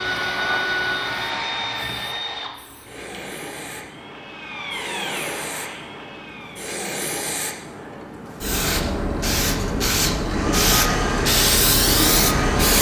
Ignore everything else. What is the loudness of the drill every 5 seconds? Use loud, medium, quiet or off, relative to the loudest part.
loud, medium, loud.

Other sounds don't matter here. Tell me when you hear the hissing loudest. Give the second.
12 s.